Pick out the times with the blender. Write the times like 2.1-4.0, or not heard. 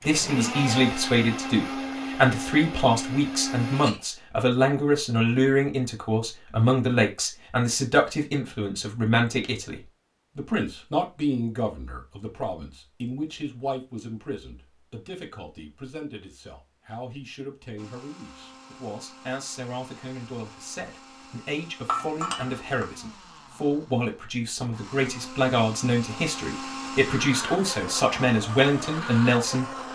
0.0-4.0, 17.8-29.9.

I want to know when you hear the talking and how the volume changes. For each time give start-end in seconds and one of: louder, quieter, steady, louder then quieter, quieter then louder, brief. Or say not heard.
0.1-29.9 quieter then louder.